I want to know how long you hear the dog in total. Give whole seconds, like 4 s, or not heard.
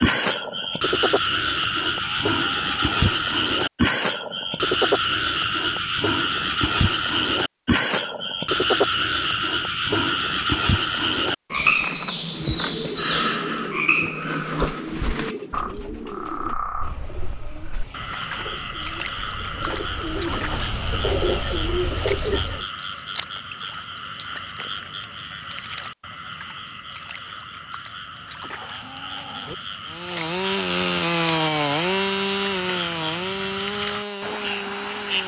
not heard.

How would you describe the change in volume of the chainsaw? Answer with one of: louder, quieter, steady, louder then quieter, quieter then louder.
quieter.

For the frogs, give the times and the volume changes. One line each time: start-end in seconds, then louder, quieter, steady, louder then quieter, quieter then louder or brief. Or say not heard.
0.0-35.2 quieter.